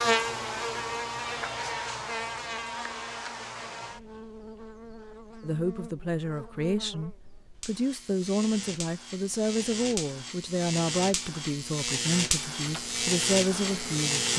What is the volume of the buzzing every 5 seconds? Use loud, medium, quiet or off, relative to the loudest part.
loud, medium, loud.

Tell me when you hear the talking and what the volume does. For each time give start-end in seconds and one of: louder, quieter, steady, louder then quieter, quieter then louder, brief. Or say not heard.
5.4-14.3 steady.